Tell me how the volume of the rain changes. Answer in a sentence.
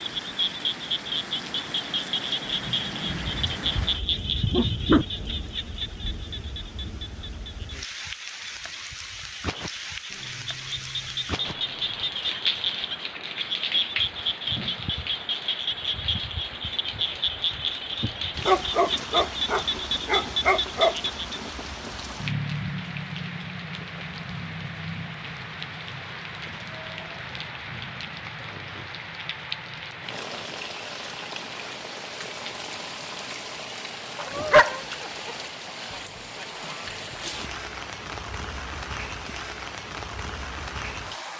The volume of the rain stays about the same.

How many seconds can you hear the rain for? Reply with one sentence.
The rain can be heard for 41 seconds in total.